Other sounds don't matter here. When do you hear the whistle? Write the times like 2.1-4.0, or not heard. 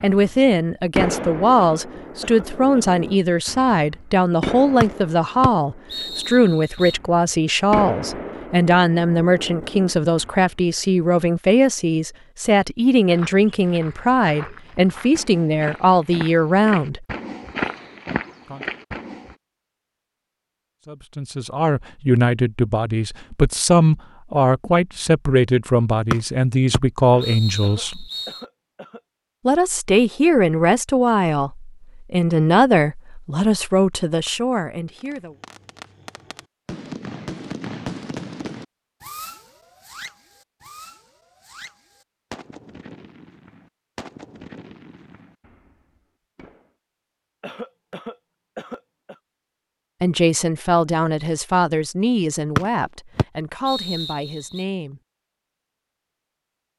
4.8-7.0, 26.1-28.4, 52.5-54.6.